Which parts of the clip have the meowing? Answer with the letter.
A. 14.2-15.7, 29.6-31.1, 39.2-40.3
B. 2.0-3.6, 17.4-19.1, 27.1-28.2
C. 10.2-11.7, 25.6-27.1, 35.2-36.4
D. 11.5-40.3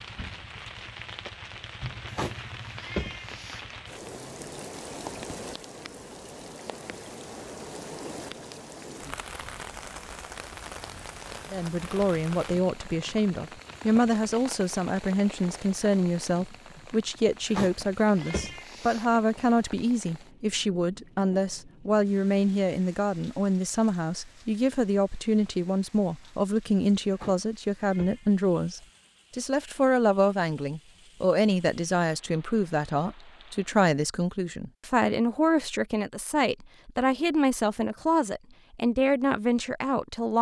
B.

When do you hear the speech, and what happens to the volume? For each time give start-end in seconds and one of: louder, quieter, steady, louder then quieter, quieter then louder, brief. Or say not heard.
11.5-40.3 steady.